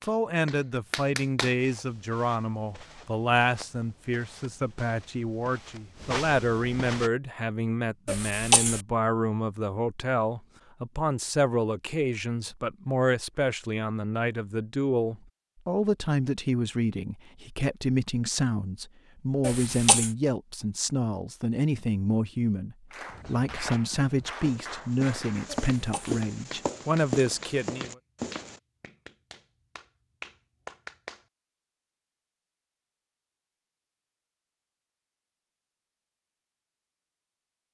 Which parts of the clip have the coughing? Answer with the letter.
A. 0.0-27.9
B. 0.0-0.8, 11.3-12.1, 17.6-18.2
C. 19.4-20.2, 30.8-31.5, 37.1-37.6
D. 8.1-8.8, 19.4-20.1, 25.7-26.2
D.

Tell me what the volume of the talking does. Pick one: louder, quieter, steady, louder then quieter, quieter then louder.
steady.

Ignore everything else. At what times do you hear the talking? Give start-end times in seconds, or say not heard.
0.0-27.9.